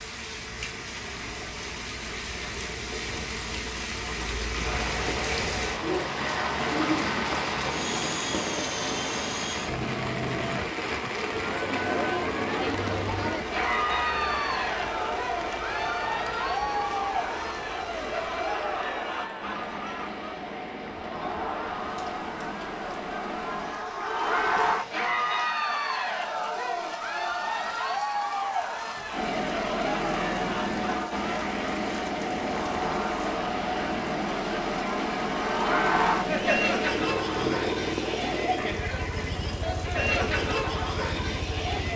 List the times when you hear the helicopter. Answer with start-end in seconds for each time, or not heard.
4.5-23.8, 29.1-41.9.